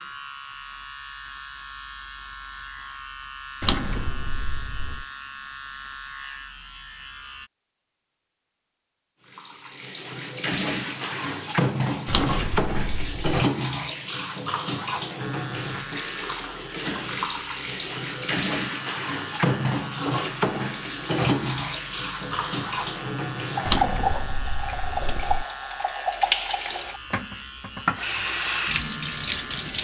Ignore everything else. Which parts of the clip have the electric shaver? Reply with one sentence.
The electric shaver can be heard from 0.0 to 7.5 s and from 15.2 to 29.7 s.